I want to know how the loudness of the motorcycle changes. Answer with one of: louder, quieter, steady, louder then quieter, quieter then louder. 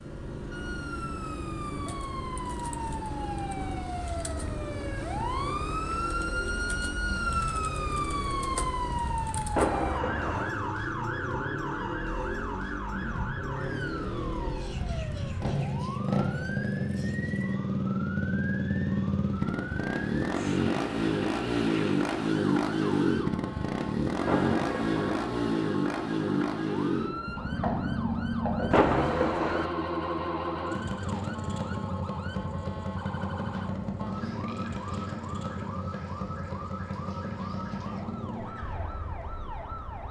louder then quieter.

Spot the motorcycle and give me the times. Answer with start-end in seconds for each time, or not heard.
0.0-40.0.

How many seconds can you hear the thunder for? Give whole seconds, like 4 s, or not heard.
3 s.